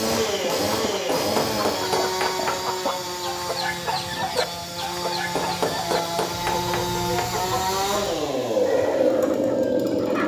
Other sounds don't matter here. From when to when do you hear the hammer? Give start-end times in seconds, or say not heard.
1.1-2.6, 5.3-7.3.